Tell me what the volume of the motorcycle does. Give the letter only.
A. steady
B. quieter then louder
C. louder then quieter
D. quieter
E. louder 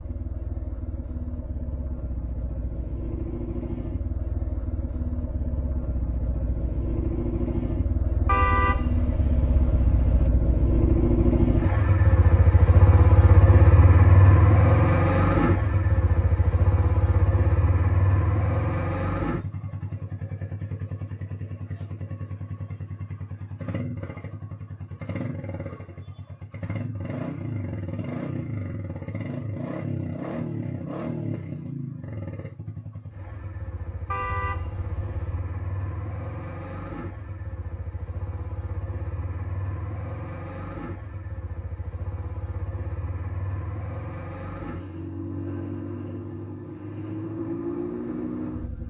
C.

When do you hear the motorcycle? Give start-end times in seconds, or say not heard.
0.0-48.8.